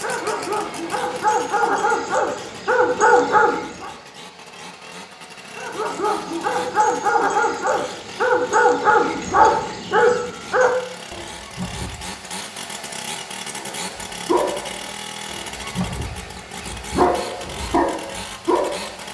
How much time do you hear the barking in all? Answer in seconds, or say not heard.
16 s.